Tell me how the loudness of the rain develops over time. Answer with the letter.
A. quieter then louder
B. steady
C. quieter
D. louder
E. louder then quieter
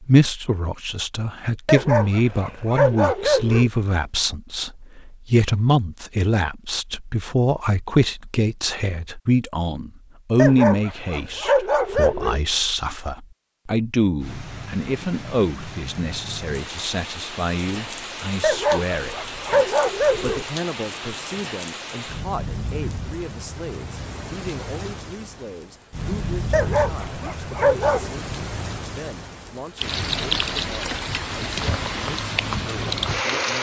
D.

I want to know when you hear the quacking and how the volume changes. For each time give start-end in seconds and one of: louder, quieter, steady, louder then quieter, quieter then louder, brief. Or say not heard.
not heard.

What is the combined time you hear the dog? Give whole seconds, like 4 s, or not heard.
8 s.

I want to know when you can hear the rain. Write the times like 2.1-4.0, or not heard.
14.2-33.5.